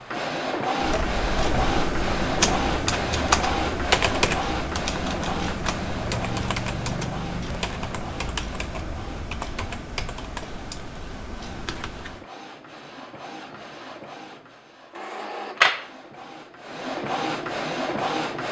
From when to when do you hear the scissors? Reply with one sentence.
You can't hear the scissors here.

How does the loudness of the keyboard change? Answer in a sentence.
The loudness of the keyboard goes down.